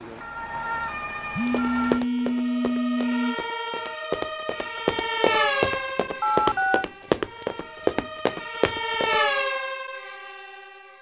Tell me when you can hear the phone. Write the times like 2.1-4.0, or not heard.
1.3-3.4, 6.2-6.8.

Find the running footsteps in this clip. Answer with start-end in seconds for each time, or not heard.
1.4-9.2.